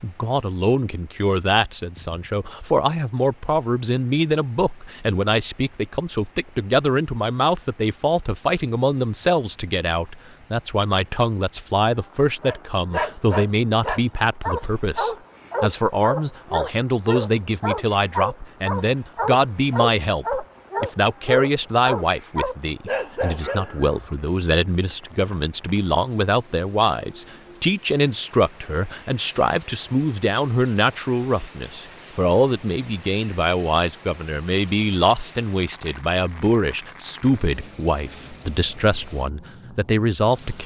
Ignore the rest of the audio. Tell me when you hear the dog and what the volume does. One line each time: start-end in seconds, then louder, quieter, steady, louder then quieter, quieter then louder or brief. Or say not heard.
12.4-24.1 steady.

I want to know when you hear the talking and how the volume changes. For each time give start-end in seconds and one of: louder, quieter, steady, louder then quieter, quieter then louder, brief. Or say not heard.
0.0-40.6 steady.